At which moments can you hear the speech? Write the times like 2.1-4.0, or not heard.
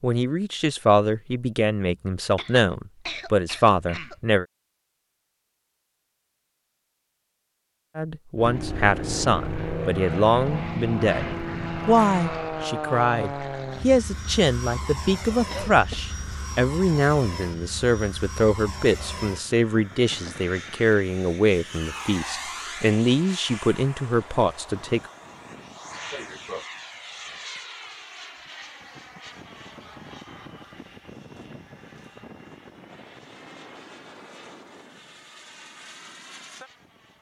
0.0-4.5, 8.0-25.1.